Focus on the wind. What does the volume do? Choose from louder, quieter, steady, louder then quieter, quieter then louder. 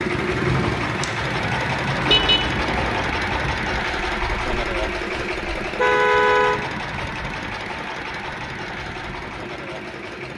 quieter.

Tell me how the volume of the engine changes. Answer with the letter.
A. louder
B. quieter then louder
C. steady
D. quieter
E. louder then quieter
D.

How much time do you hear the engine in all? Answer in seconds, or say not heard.
10 s.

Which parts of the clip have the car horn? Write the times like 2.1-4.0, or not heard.
2.0-2.5, 5.8-6.6.